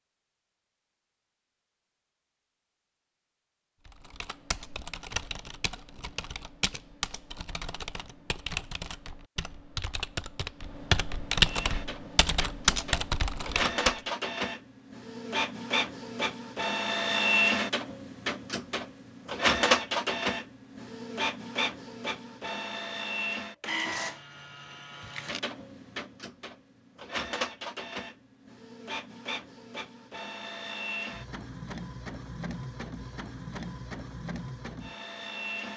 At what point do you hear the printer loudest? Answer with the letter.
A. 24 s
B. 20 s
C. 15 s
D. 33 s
B.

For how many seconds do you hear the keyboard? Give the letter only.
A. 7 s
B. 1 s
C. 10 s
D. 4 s
C.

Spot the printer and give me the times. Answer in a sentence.
The printer can be heard from 11.4 to 35.7 s.